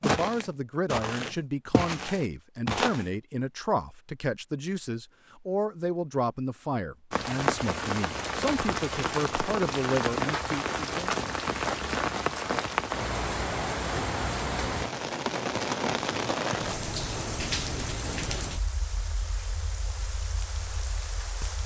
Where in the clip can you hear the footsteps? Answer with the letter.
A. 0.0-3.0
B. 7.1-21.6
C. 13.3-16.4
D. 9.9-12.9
A.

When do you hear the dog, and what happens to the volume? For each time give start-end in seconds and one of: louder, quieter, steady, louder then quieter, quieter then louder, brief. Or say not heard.
not heard.